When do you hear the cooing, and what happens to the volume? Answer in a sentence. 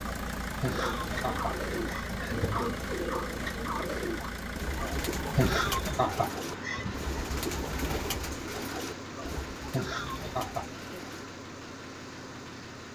You can hear the cooing from 0.7 to 11.2 s, getting quieter.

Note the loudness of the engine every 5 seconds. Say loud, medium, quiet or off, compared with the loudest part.
loud, loud, medium.